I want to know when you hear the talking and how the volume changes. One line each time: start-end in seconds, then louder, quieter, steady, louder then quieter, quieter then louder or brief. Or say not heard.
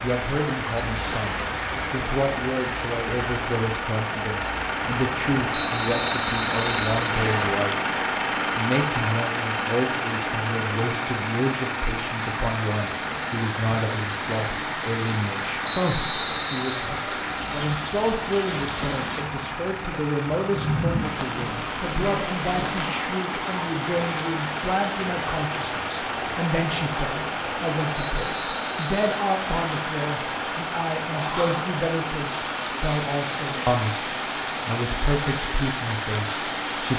0.0-7.8 steady
8.6-36.9 steady.